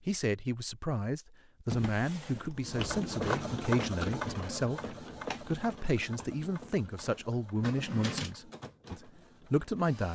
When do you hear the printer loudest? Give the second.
4 s.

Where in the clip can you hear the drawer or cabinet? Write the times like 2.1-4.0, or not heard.
1.6-2.8, 7.6-8.3.